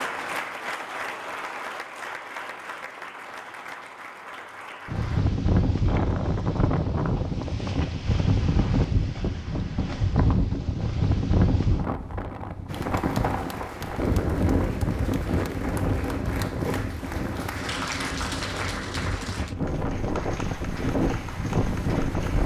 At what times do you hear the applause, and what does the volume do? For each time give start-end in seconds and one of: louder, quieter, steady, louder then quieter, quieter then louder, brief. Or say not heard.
0.0-5.3 quieter
12.7-22.4 louder then quieter.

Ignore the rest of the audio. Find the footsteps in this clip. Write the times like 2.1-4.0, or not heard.
not heard.